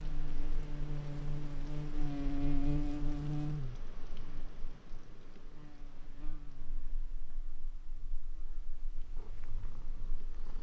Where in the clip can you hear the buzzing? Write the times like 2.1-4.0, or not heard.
0.0-10.4.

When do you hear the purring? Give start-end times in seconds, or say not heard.
8.9-10.5.